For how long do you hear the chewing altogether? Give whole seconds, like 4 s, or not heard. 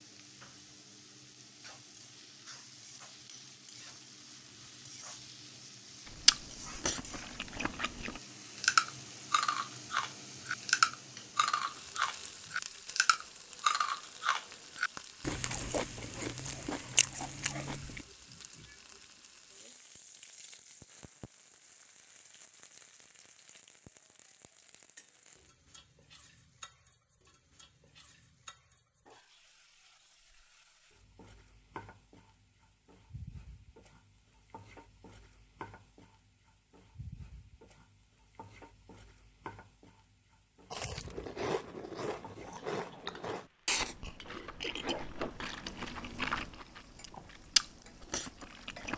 20 s.